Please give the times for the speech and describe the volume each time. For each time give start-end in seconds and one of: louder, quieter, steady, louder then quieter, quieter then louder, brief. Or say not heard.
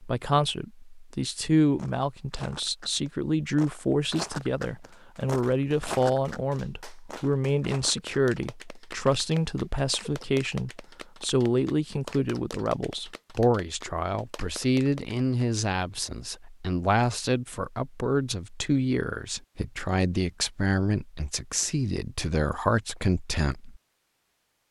0.0-23.8 steady.